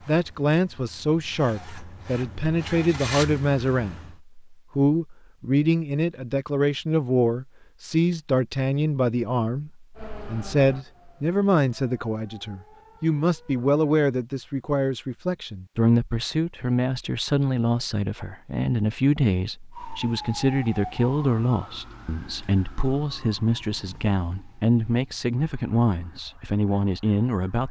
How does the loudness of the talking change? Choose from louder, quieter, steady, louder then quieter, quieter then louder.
steady.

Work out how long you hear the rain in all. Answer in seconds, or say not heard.
not heard.